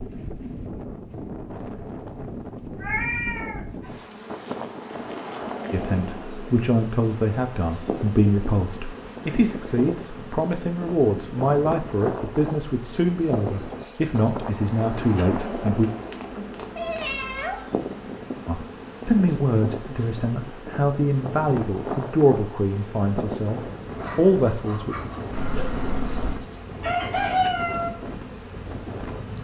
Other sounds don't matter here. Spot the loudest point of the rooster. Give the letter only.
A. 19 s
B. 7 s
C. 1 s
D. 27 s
D.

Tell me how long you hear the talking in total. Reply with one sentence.
You can hear the talking for 17 seconds altogether.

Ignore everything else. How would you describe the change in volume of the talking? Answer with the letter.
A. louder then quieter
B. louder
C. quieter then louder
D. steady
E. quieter
D.